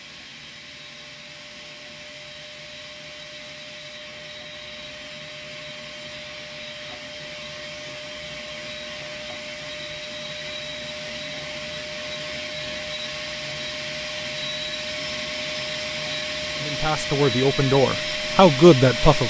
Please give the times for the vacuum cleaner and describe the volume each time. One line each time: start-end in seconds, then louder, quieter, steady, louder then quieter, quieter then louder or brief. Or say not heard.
0.0-19.2 louder.